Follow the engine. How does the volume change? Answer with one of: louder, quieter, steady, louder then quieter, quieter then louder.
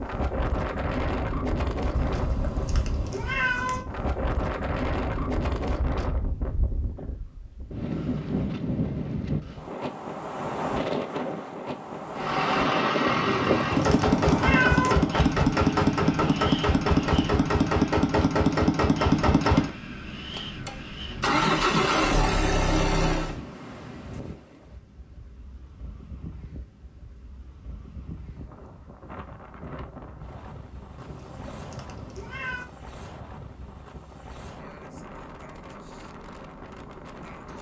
steady.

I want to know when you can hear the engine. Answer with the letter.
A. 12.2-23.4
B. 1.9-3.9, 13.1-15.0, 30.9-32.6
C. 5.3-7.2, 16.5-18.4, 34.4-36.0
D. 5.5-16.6
A.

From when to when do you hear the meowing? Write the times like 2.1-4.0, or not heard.
1.9-3.9, 13.1-15.0, 30.9-32.6.